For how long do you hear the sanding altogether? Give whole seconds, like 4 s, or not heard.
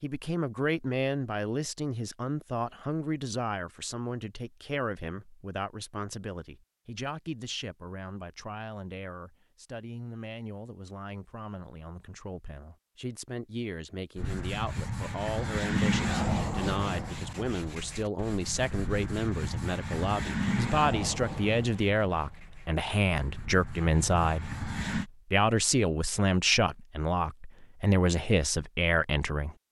11 s.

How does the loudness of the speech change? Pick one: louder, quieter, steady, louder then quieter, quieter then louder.
quieter then louder.